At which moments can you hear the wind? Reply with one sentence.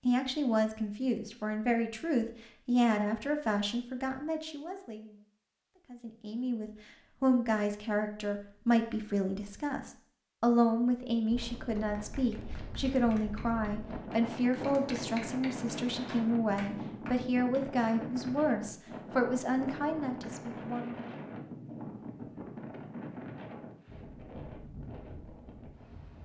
You can hear the wind from 11.3 to 26.2 s.